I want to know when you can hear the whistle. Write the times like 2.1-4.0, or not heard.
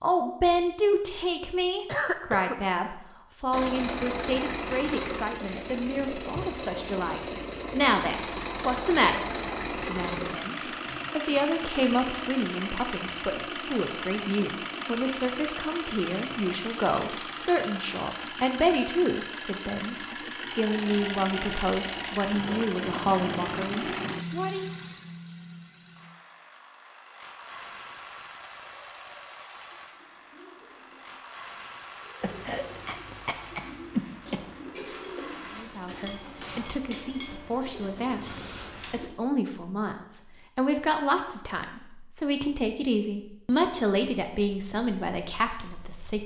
not heard.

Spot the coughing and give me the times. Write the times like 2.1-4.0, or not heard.
1.9-2.6, 32.2-34.5.